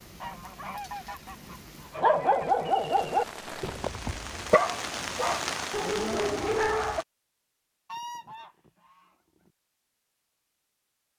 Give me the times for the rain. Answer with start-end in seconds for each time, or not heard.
0.0-7.0.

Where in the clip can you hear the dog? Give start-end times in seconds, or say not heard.
1.9-7.0.